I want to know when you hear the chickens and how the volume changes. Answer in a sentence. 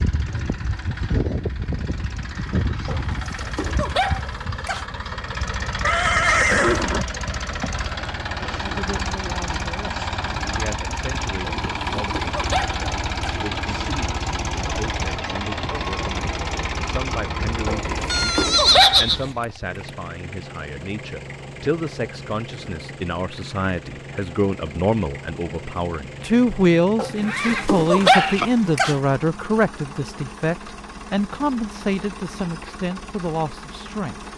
You can't hear the chickens here.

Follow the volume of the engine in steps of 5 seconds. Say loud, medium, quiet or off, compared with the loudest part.
loud, loud, loud, loud, medium, medium, medium.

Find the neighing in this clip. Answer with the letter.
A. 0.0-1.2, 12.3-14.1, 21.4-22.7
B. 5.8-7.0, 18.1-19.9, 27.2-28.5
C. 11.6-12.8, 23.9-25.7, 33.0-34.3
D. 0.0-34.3
B.